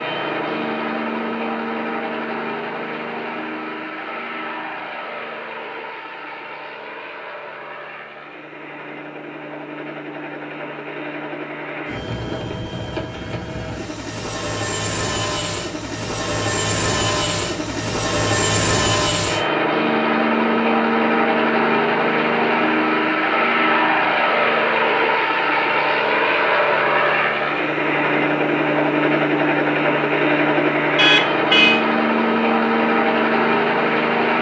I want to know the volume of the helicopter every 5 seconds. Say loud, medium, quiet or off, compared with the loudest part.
medium, quiet, medium, loud, loud, loud, loud.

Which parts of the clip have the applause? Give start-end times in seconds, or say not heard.
not heard.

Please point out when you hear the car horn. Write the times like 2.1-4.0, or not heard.
30.9-31.8.